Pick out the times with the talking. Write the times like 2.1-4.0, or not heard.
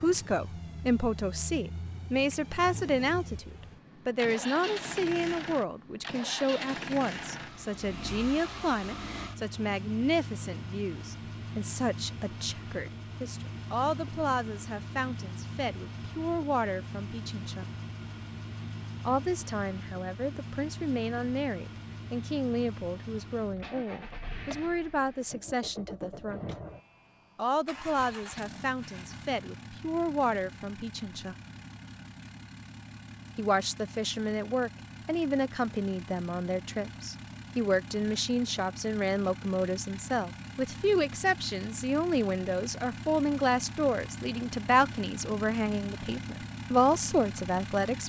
0.0-17.6, 19.1-26.4, 27.4-31.4, 33.4-48.0.